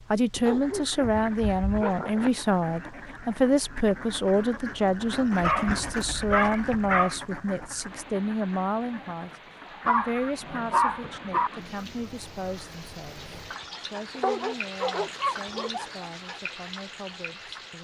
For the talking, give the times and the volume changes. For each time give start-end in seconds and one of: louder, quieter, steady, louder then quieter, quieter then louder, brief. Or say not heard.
0.1-17.8 quieter.